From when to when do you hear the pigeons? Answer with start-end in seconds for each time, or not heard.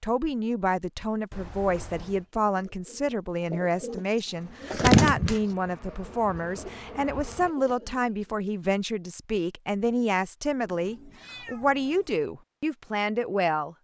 1.6-8.0.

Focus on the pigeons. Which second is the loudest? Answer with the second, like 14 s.
5 s.